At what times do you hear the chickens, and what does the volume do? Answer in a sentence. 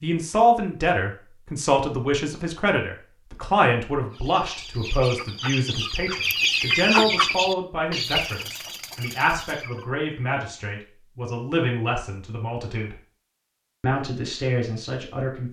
The chickens can be heard from 4.1 to 9.8 s, getting louder then quieter.